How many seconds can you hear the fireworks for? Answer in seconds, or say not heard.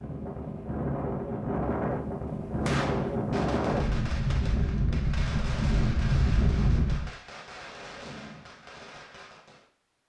7 s.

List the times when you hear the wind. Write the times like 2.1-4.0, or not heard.
0.0-7.1.